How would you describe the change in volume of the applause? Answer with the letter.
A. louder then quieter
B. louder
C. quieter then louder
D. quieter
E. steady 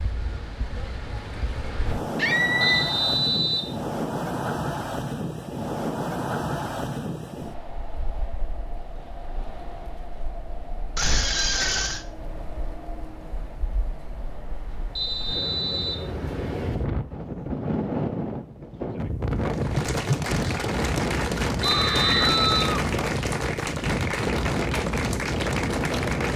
E.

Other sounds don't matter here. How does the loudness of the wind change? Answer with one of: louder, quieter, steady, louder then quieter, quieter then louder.
quieter then louder.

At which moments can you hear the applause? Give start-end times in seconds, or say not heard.
19.4-26.3.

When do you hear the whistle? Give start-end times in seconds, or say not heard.
2.6-3.7, 14.9-16.1, 21.6-22.8.